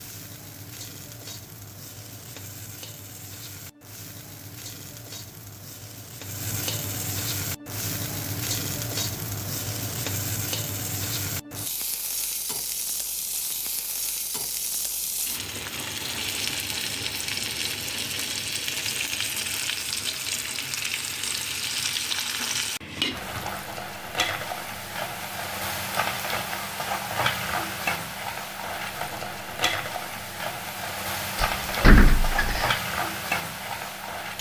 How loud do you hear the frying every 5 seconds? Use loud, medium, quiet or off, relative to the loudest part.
quiet, loud, loud, loud, loud, loud, loud.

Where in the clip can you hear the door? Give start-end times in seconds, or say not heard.
31.5-32.8.